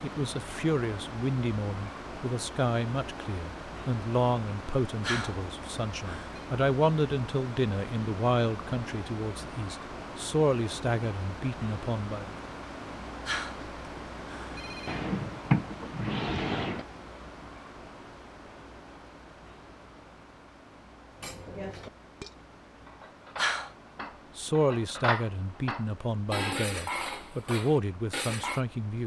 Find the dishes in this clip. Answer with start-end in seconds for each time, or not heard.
21.1-28.6.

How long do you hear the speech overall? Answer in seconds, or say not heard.
17 s.